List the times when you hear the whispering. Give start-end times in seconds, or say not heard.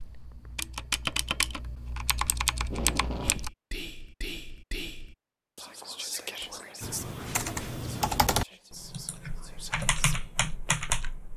3.2-10.2.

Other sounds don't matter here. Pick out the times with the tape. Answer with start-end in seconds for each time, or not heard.
2.6-3.4.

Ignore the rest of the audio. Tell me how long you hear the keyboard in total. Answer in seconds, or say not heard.
8 s.